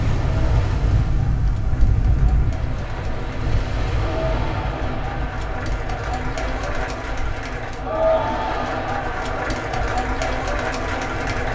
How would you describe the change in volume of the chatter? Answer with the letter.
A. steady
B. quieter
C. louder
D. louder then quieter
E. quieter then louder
C.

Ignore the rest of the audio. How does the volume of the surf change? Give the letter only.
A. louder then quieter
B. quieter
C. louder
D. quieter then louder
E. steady
B.